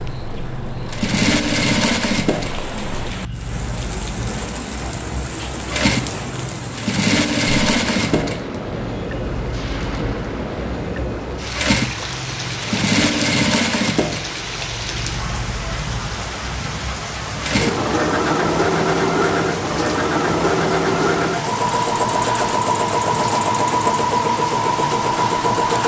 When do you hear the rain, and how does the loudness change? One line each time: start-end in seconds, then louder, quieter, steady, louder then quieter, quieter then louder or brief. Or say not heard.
0.0-25.8 steady.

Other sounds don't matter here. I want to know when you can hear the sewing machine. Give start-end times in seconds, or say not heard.
0.0-25.8.